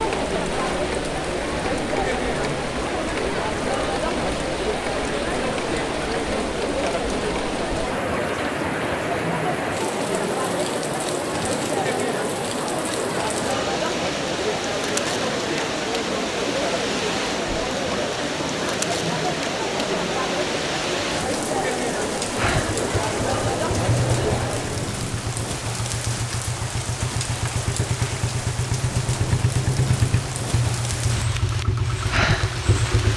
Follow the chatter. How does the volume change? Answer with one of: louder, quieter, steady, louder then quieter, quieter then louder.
steady.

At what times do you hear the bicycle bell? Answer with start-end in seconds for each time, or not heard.
not heard.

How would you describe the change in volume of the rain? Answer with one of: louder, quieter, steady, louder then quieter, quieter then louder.
steady.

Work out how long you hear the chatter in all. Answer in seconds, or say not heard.
25 s.